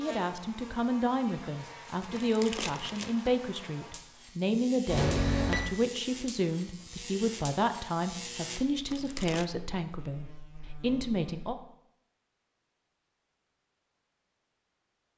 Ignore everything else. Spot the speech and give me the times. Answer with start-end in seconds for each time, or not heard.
0.0-11.6.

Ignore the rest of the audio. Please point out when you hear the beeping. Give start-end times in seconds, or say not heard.
4.8-5.7.